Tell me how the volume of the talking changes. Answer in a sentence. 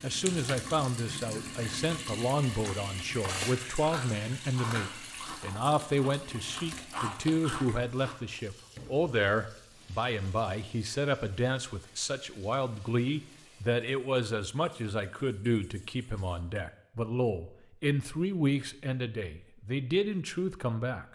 The loudness of the talking stays about the same.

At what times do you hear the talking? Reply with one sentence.
You can hear the talking from 0.0 to 21.1 s.